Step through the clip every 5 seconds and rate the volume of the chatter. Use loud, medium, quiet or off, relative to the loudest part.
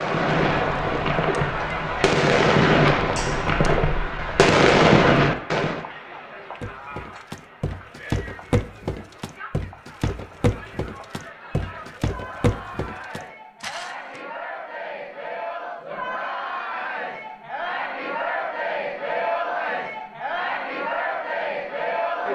loud, quiet, medium, loud, loud.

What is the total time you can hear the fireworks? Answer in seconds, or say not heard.
6 s.